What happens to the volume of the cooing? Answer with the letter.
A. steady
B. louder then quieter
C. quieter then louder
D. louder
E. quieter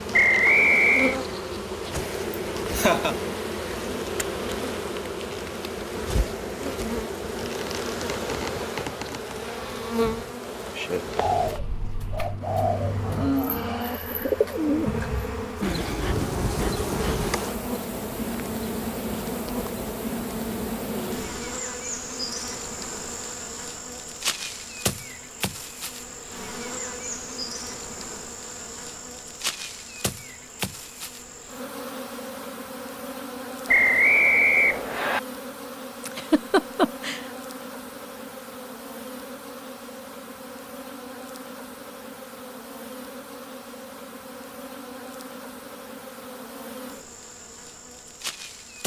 E.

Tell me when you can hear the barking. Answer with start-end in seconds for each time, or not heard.
not heard.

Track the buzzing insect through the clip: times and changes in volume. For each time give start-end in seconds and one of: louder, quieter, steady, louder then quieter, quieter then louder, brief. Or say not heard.
0.0-48.8 quieter.